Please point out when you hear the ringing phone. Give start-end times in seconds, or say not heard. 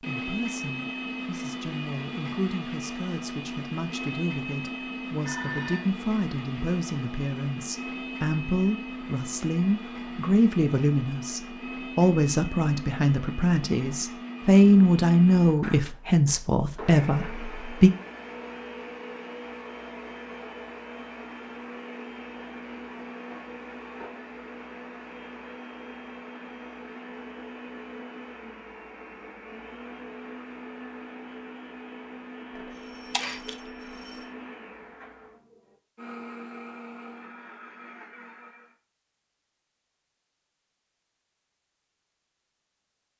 5.2-5.8, 32.5-34.4.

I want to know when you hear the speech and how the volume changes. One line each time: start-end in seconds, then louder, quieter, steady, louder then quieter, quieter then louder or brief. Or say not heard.
0.0-17.9 louder.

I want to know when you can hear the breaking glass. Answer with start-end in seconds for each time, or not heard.
33.1-33.6.